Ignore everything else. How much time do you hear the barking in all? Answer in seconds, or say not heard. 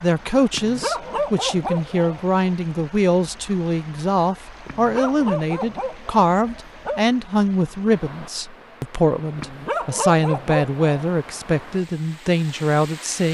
6 s.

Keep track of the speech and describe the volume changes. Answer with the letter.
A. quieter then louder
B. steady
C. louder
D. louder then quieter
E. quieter
B.